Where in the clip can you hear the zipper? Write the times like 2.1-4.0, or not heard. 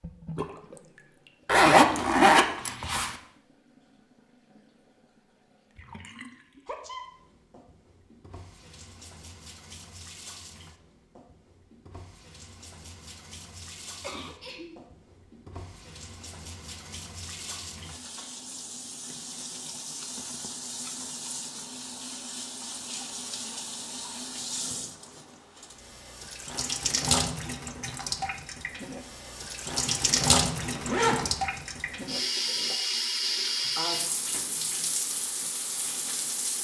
1.4-3.1, 29.6-31.4.